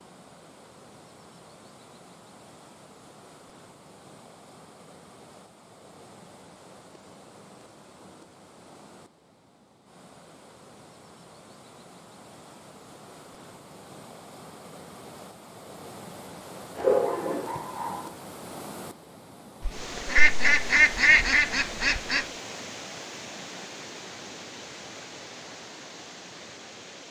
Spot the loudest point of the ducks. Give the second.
21 s.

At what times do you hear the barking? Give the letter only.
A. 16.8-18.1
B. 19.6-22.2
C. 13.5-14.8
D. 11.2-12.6
A.